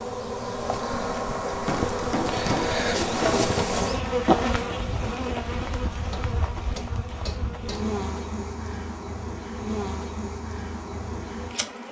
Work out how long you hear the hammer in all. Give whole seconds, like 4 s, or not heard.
4 s.